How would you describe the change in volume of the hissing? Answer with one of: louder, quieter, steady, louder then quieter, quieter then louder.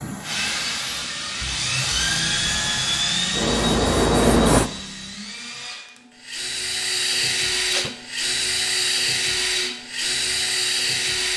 louder.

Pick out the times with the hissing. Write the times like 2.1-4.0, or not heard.
0.0-4.7.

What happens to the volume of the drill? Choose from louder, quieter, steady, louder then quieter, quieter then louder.
quieter then louder.